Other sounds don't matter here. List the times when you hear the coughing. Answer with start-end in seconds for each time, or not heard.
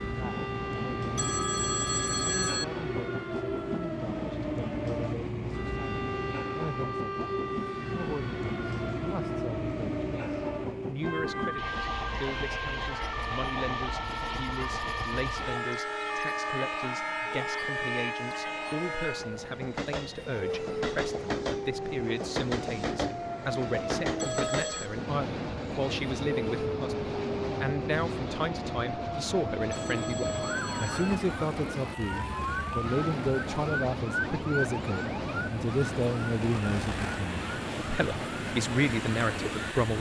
not heard.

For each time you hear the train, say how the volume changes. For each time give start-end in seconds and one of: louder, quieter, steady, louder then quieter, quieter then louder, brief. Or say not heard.
0.0-39.9 steady.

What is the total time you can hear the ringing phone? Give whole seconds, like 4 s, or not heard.
4 s.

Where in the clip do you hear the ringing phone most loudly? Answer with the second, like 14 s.
2 s.